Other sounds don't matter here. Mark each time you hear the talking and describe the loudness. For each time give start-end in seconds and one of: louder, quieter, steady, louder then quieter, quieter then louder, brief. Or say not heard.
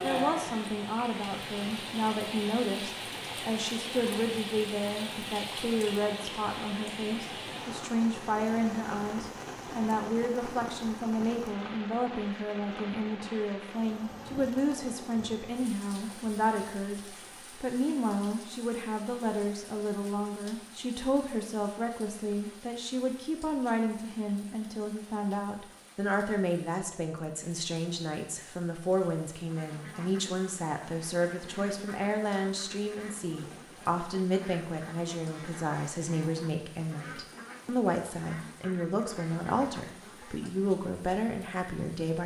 0.0-42.2 steady.